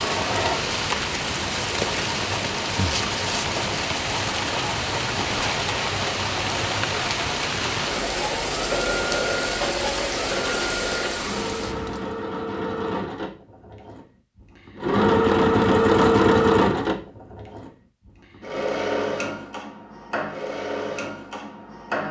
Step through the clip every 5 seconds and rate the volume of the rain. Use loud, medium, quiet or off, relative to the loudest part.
loud, loud, loud, off, off.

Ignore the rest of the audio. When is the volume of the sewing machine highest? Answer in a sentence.
The volume of the sewing machine peaks at 16 seconds.